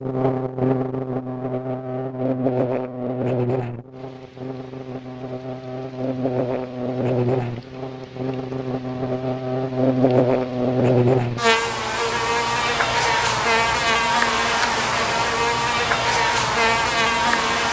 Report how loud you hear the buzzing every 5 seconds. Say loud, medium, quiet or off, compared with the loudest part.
medium, medium, loud, loud.